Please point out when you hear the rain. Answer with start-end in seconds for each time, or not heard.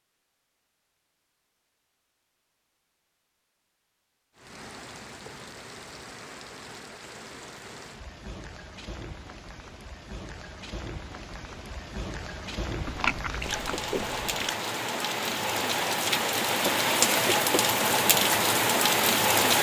4.3-19.5.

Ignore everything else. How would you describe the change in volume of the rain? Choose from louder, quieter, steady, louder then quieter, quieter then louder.
louder.